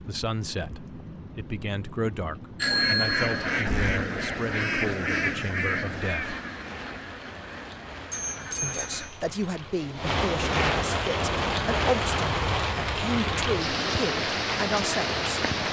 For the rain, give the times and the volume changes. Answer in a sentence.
The rain can be heard from 0.0 to 15.6 s, getting louder.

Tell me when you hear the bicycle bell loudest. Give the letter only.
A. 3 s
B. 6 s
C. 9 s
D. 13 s
A.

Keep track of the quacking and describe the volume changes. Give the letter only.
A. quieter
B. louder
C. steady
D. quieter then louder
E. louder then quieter
A.